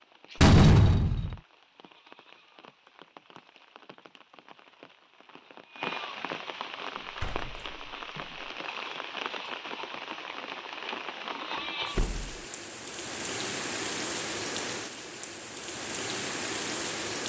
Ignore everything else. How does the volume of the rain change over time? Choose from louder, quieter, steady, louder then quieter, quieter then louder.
louder.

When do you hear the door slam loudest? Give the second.
1 s.